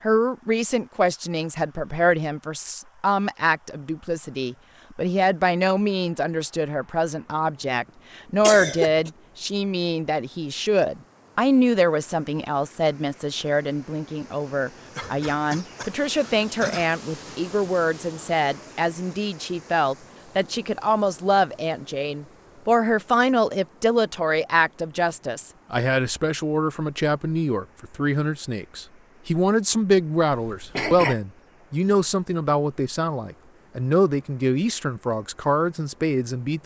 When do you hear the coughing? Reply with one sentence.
The coughing can be heard from 8.4 to 9.1 s, from 14.9 to 16.9 s and from 30.3 to 31.1 s.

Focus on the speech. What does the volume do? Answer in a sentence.
The loudness of the speech stays about the same.